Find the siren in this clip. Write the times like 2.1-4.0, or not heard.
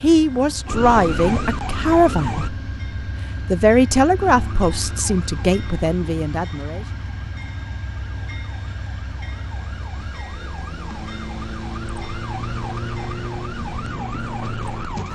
0.1-2.5, 4.2-15.0.